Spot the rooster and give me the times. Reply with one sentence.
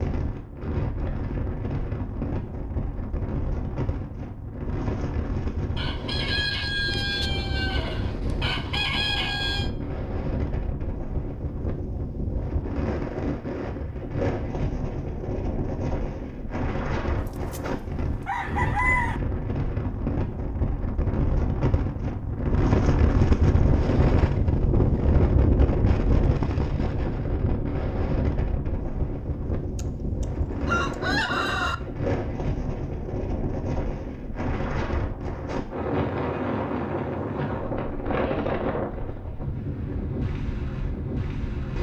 The rooster can be heard from 5.8 to 9.7 s, from 17.2 to 19.2 s and from 29.8 to 31.8 s.